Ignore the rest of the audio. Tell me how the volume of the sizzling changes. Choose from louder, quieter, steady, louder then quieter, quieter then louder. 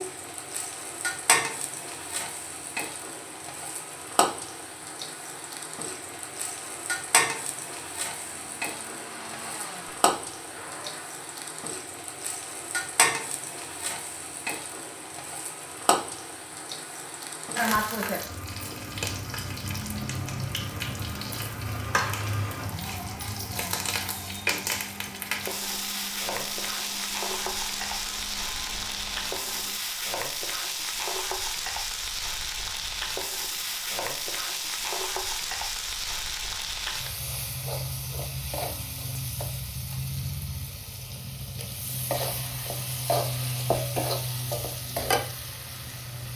steady.